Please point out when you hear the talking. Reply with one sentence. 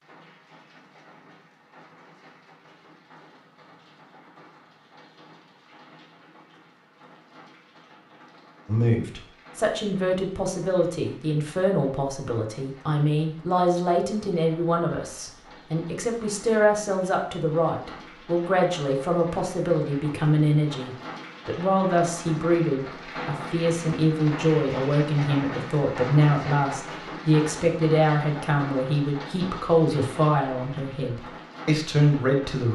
The talking can be heard from 8.7 to 32.6 s.